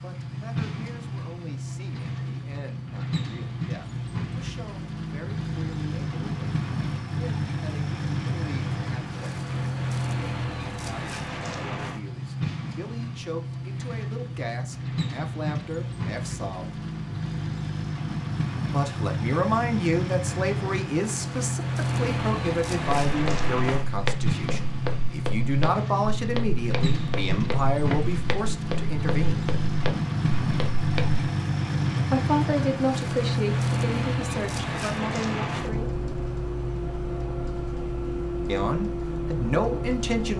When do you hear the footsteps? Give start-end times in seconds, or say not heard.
22.9-31.2.